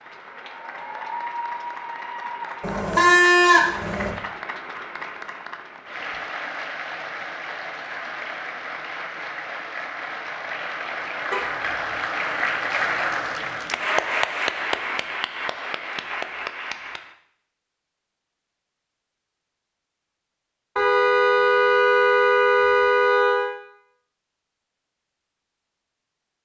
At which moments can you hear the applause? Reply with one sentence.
The applause can be heard from 0.0 to 17.1 s.